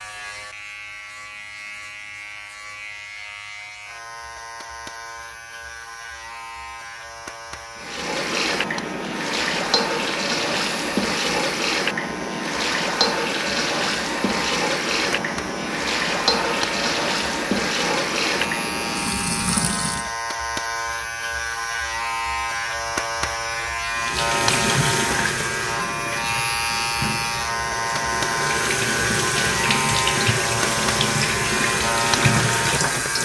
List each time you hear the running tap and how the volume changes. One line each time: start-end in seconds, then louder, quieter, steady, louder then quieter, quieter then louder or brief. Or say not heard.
7.8-20.1 steady
23.9-33.2 quieter then louder.